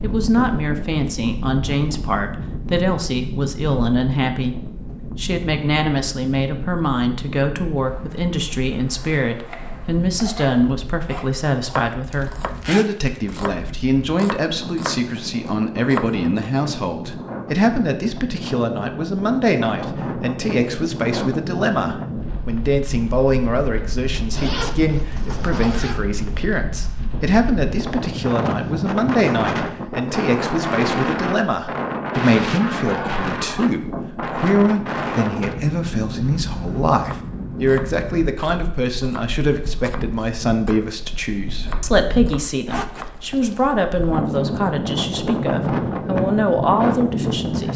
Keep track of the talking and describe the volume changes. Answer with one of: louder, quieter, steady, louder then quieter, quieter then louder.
steady.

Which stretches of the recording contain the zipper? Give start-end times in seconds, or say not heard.
12.1-13.2, 24.3-26.0, 42.6-43.6.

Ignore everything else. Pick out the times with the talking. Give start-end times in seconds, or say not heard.
0.0-47.7.